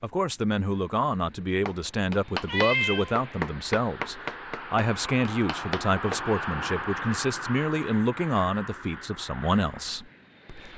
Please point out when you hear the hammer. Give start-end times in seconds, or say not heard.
1.6-6.2.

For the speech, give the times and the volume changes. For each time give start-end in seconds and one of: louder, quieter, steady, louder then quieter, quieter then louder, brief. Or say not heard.
0.0-10.7 steady.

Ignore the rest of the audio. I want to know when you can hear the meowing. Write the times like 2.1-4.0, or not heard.
2.5-3.1.